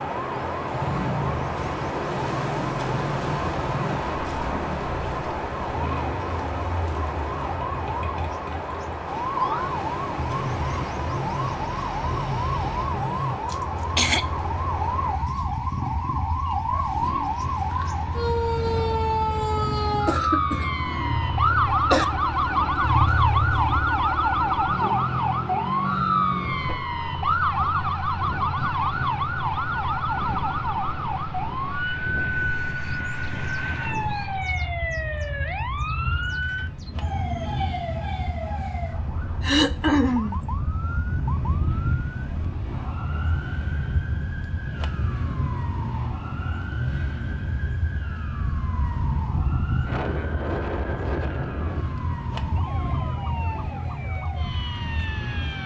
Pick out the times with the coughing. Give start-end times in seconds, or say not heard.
13.5-14.2, 20.1-20.6, 21.5-22.1, 39.4-40.4.